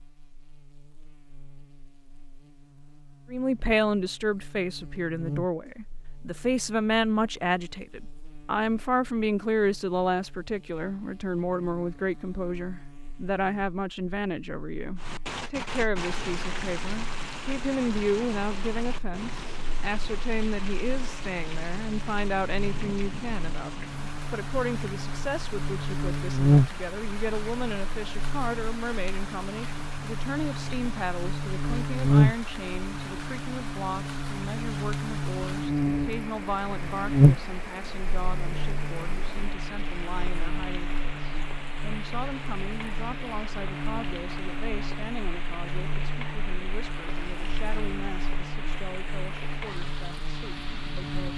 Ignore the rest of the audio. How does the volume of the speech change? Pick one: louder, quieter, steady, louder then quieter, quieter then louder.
quieter.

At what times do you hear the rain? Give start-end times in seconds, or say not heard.
14.9-51.3.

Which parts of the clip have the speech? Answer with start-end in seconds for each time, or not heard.
3.3-51.3.